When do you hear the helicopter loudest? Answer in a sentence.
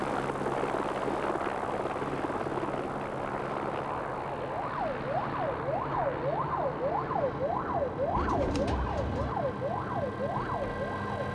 The loudest moment of the helicopter is at 1 second.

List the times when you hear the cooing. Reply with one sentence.
The cooing can be heard from 8.2 to 9.3 s.